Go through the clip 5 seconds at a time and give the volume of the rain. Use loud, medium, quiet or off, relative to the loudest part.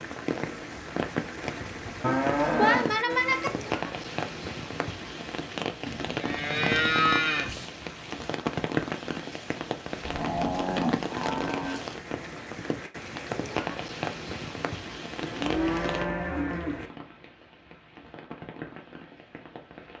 loud, loud, loud, medium.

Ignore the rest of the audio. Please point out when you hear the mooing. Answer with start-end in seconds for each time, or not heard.
2.0-3.5, 5.8-7.7, 10.0-11.8, 15.2-16.9.